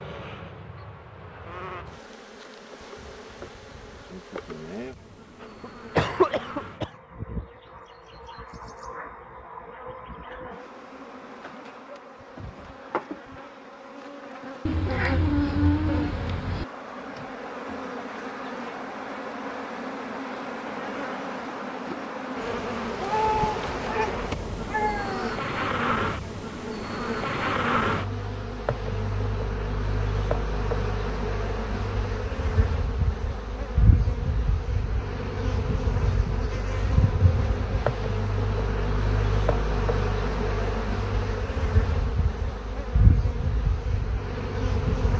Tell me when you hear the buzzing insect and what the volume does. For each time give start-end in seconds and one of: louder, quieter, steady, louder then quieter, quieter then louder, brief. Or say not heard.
0.0-45.1 louder.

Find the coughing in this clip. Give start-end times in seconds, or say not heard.
5.4-6.9.